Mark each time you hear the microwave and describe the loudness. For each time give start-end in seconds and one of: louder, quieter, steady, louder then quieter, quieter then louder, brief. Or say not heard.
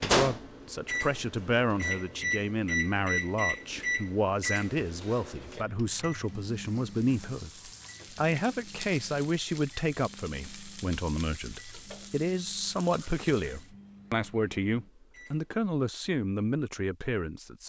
0.0-15.6 quieter.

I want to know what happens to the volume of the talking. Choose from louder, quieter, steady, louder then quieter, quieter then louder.
steady.